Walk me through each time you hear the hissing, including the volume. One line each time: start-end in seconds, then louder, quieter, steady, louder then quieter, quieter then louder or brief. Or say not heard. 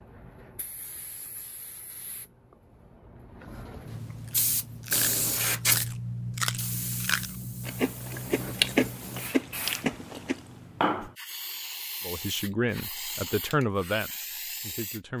0.0-15.1 louder then quieter.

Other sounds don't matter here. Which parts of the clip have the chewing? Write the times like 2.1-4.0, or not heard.
4.2-10.4.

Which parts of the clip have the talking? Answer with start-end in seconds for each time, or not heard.
12.1-15.1.